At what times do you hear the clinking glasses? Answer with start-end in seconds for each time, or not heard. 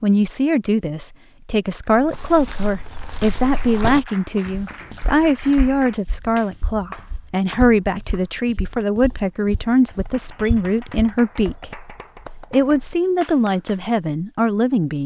not heard.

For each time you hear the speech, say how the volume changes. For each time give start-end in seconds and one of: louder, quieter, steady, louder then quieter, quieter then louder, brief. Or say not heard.
0.0-11.7 steady
12.5-15.0 brief.